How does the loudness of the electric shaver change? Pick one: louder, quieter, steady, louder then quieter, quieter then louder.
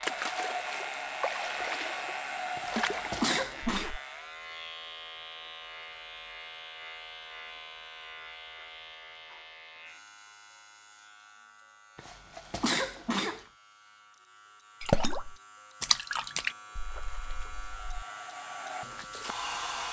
quieter then louder.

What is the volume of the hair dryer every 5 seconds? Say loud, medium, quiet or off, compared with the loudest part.
loud, off, off, loud.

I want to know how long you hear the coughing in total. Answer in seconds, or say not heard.
3 s.